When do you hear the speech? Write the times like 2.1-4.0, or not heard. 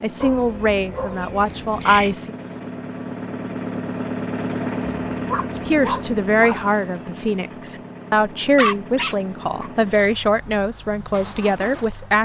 0.0-2.4, 5.7-12.2.